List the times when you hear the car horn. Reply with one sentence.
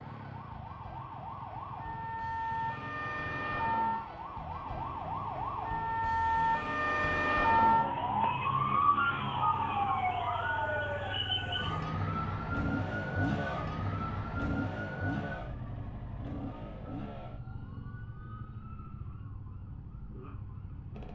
The car horn can't be heard in this clip.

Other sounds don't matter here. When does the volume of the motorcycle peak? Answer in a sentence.
The loudest moment of the motorcycle is at 13 seconds.